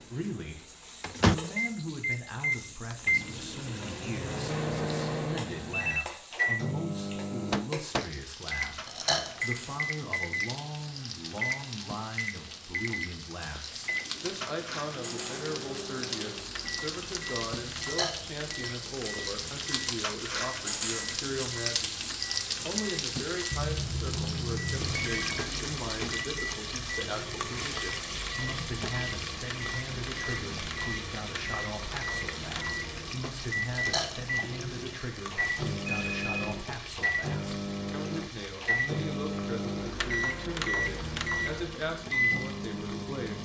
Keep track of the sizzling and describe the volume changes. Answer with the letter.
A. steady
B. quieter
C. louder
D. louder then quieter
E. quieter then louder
D.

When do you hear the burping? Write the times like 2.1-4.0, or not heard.
8.8-9.4, 17.8-18.2, 33.7-34.2.